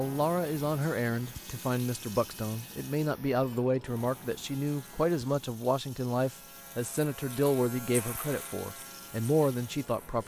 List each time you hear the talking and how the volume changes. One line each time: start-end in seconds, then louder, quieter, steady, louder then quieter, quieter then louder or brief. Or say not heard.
0.0-10.2 steady.